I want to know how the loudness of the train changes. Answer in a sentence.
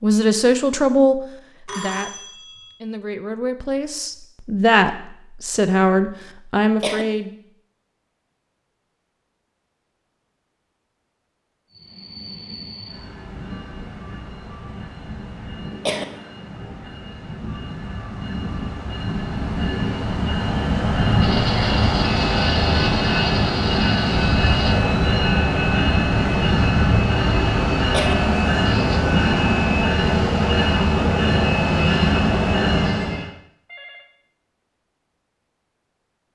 The volume of the train goes up.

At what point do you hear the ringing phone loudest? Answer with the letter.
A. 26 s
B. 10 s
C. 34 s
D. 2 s
D.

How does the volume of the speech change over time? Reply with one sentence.
The loudness of the speech goes down, then up.